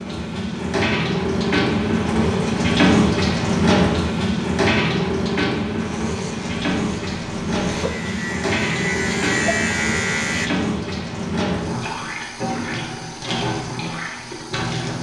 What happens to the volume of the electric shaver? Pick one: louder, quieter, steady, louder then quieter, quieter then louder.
louder.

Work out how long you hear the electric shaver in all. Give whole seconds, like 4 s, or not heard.
5 s.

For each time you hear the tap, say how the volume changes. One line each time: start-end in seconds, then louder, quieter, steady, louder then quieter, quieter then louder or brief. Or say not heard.
0.0-14.9 quieter.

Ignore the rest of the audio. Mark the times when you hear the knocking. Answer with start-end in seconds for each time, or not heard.
not heard.